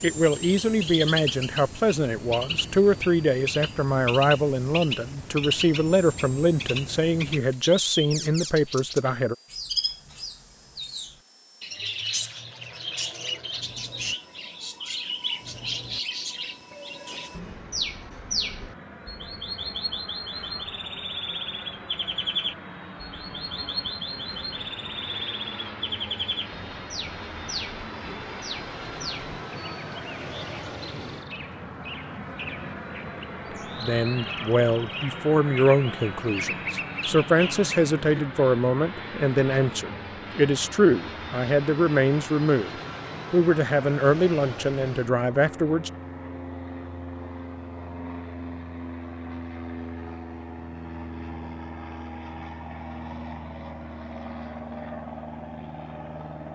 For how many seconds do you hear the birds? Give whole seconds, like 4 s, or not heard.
38 s.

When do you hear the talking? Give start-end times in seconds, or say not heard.
0.0-9.3, 33.8-42.7, 43.3-45.9.